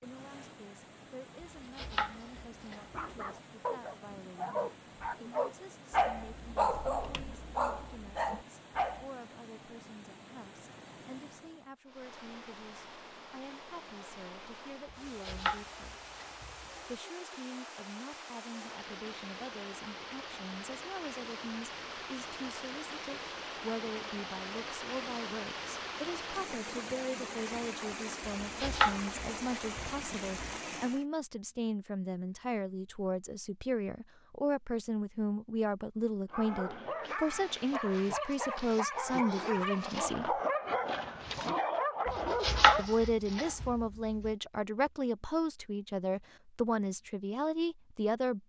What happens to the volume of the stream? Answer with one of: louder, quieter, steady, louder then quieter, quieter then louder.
louder.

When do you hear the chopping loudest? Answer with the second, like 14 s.
43 s.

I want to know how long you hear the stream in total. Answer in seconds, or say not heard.
31 s.